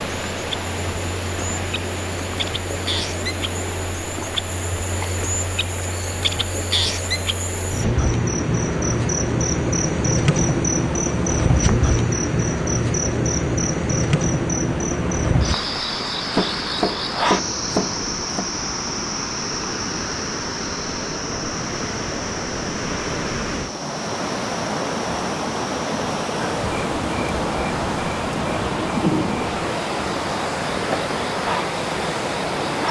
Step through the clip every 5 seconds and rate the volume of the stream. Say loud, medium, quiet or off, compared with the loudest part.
medium, medium, medium, medium, loud, loud, loud.